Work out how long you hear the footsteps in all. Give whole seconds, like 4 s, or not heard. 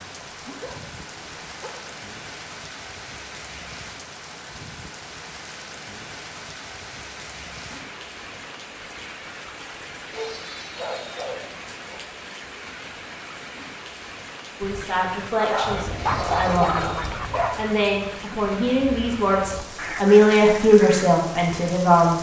not heard.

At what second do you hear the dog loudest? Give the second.
16 s.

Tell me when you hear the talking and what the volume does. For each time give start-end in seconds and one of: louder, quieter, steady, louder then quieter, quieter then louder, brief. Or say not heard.
14.6-16.9 brief
17.6-22.1 louder then quieter.